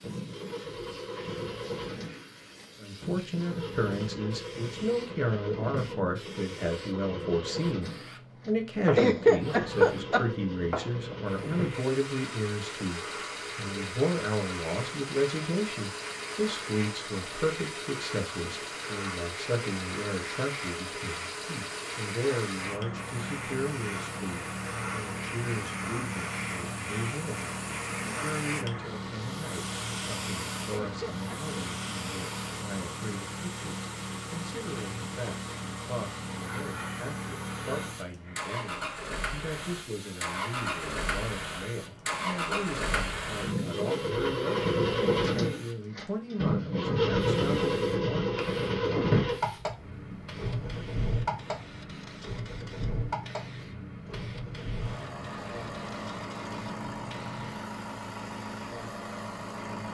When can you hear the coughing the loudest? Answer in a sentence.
The loudest moment of the coughing is at 9 seconds.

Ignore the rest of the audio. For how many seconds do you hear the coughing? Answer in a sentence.
The coughing can be heard for 2 seconds in total.